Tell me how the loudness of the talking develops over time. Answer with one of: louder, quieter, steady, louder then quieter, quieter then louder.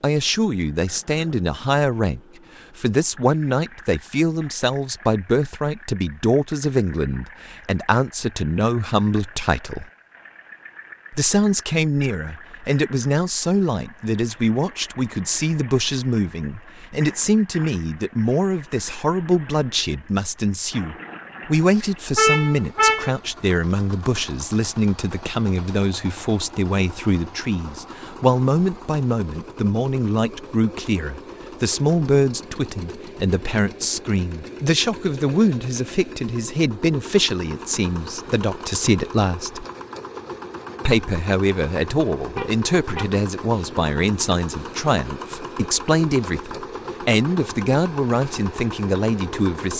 steady.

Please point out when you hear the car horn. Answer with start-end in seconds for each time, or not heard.
22.1-23.1, 42.4-43.8.